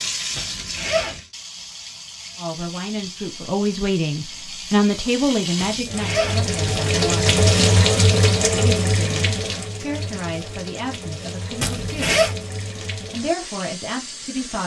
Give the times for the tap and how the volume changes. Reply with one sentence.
You can hear the tap from 0.0 to 14.6 s, getting louder then quieter.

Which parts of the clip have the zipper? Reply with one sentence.
The zipper can be heard from 0.3 to 1.2 s, from 5.5 to 7.2 s and from 11.6 to 12.3 s.